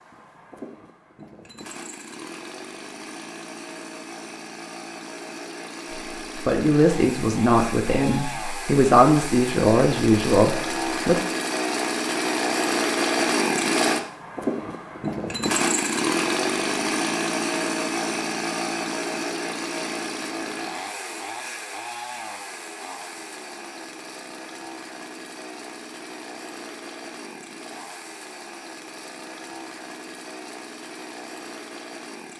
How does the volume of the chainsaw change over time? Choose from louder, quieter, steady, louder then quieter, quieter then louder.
louder then quieter.